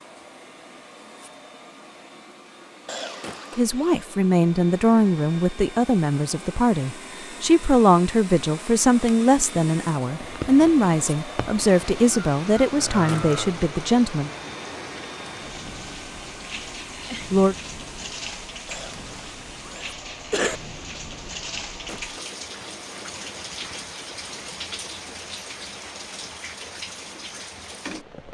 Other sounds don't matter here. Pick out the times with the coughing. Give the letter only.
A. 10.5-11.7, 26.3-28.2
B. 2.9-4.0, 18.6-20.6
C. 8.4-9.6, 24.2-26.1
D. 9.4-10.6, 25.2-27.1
B.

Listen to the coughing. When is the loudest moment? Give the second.
20 s.